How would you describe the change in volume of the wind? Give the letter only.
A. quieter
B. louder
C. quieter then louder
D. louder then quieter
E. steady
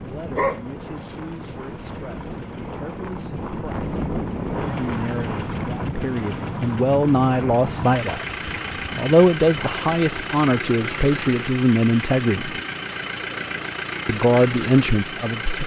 D.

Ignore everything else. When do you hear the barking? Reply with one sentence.
You can hear the barking from 0.3 to 1.9 s.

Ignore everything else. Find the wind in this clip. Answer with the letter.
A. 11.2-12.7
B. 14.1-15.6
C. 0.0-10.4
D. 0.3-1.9
C.